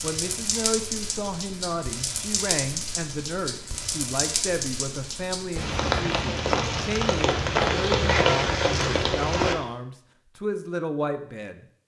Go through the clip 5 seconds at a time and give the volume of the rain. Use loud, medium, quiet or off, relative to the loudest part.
medium, loud, off.